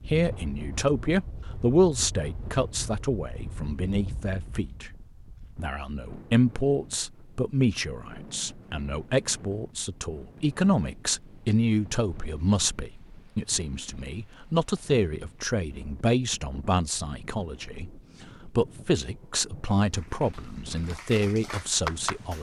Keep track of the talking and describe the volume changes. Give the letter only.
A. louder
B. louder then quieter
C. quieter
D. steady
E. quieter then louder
D.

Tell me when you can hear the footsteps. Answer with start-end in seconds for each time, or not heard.
not heard.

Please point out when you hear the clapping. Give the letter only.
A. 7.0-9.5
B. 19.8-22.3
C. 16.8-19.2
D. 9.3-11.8
B.